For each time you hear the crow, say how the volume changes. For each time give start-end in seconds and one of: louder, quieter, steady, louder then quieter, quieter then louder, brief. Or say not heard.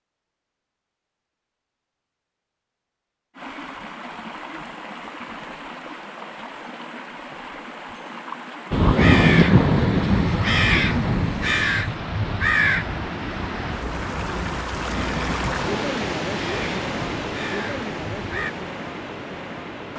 8.7-18.5 quieter.